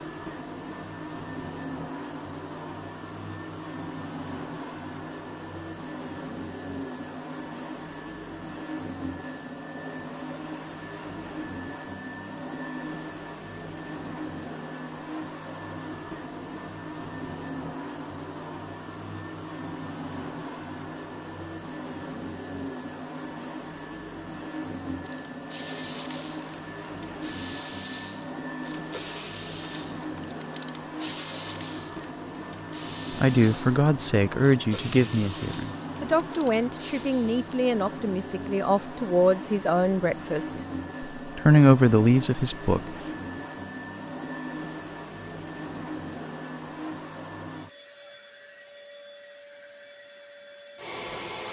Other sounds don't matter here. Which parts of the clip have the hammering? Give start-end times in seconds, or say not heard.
not heard.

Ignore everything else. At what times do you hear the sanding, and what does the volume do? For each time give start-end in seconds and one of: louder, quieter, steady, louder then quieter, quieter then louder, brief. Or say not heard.
not heard.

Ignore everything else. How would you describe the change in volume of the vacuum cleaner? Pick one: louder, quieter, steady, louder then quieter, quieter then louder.
steady.